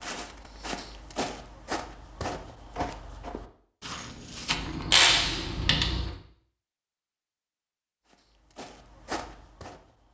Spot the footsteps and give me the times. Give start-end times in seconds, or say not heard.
0.0-4.8, 8.1-10.0.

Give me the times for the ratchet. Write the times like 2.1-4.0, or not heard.
4.5-6.1.